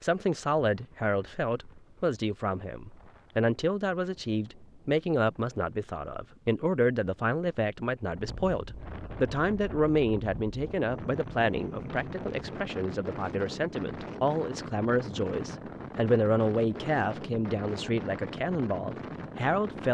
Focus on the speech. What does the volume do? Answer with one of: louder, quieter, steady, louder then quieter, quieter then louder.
steady.